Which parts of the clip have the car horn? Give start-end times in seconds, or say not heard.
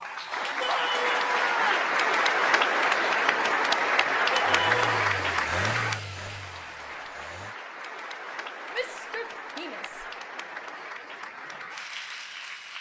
not heard.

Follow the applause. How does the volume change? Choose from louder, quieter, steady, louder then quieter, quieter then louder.
quieter.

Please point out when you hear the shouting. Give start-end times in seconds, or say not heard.
0.6-1.9, 4.3-4.9, 8.7-10.1.